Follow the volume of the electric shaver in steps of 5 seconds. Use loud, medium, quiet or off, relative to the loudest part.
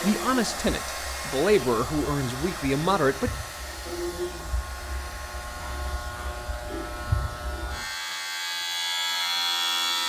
medium, loud.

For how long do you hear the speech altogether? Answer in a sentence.
You can hear the speech for 3 seconds altogether.